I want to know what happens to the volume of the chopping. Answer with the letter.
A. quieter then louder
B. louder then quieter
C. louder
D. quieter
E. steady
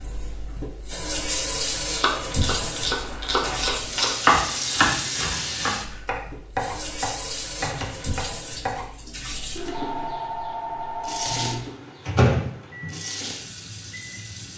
B.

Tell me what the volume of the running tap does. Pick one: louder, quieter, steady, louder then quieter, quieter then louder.
quieter.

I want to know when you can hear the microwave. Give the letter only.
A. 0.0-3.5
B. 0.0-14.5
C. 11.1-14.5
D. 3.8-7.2
C.